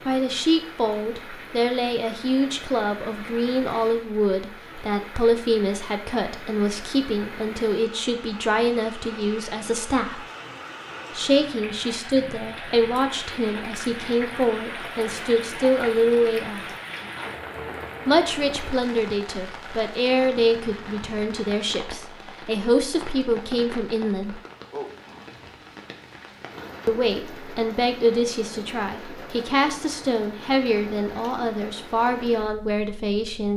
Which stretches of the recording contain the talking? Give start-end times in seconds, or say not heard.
0.1-10.2, 11.1-16.6, 18.1-24.4, 26.9-33.5.